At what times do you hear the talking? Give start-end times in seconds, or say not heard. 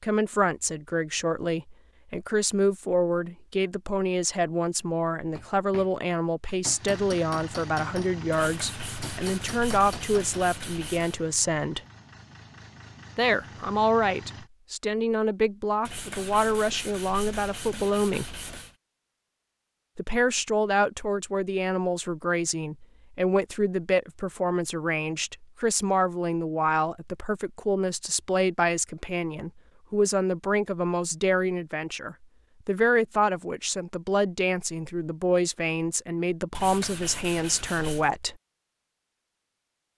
0.0-11.8, 13.2-18.2, 19.9-38.4.